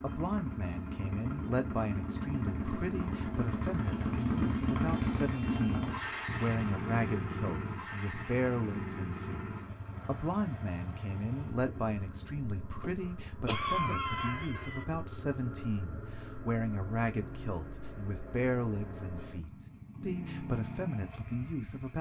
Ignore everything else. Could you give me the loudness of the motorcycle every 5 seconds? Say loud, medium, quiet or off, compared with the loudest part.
loud, loud, medium, medium, medium.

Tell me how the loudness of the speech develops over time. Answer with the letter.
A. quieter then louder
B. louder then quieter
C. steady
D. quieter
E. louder
C.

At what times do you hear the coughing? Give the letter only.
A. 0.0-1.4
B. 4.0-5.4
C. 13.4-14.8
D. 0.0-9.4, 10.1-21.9
C.